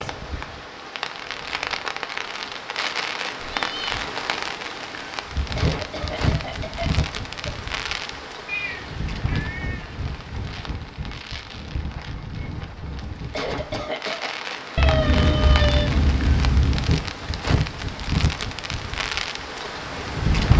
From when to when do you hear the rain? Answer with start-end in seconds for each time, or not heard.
0.0-20.5.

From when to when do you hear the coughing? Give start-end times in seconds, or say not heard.
5.5-7.5, 13.3-14.3.